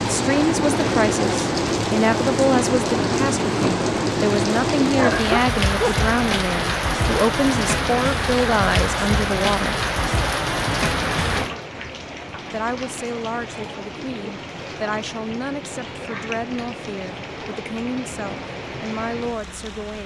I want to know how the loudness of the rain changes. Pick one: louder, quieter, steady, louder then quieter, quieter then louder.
quieter.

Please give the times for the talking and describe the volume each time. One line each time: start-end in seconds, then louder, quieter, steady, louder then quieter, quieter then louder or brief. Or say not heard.
0.0-9.8 steady
12.5-20.0 steady.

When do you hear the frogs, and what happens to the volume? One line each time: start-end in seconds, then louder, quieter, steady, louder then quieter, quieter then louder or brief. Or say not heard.
not heard.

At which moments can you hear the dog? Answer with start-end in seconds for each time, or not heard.
5.0-6.0.